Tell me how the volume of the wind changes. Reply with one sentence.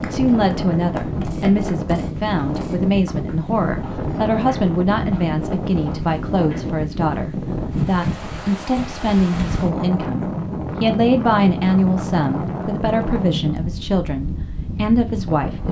The loudness of the wind stays about the same.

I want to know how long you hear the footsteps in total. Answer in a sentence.
You can't hear the footsteps here.